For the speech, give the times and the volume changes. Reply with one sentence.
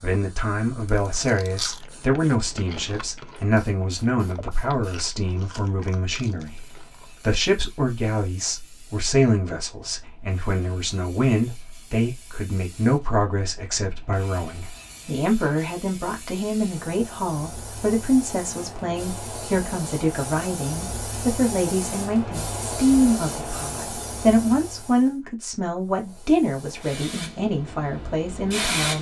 You can hear the speech from 0.0 to 28.9 s, at a steady volume.